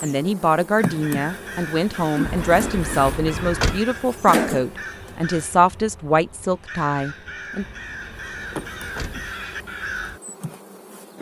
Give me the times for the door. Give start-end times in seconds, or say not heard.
2.2-3.8, 7.6-9.3.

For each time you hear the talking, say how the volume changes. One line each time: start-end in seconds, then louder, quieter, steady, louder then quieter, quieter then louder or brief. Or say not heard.
0.0-7.7 steady.